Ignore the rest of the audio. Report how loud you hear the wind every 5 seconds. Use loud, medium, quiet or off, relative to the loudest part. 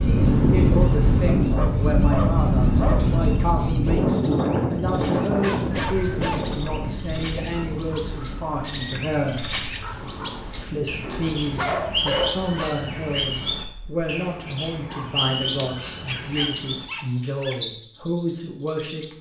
loud, medium, quiet, off.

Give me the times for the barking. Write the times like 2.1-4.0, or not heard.
1.4-3.1, 5.4-6.5, 11.0-12.8, 16.1-17.6.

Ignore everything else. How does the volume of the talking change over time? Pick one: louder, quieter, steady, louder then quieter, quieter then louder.
steady.